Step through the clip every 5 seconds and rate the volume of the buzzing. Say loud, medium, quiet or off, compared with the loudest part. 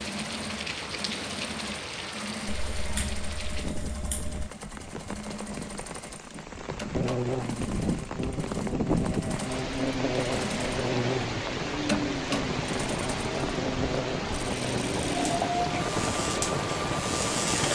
off, loud, loud, loud.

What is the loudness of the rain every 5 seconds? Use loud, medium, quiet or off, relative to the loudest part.
medium, loud, loud, loud.